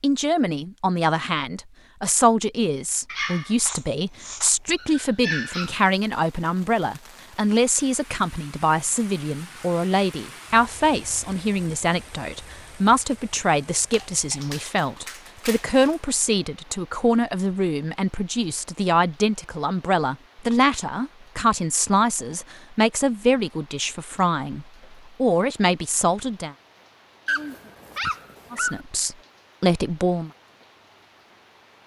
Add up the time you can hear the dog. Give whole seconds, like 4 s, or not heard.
6 s.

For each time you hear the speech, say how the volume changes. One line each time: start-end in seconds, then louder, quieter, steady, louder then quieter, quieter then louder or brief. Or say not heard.
0.0-26.6 steady
28.5-30.3 brief.